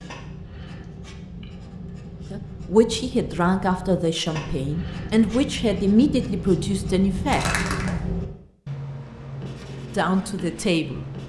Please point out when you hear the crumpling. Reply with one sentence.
The crumpling can be heard from 7.3 to 8.0 s.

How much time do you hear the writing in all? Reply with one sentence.
You can hear the writing for 11 seconds altogether.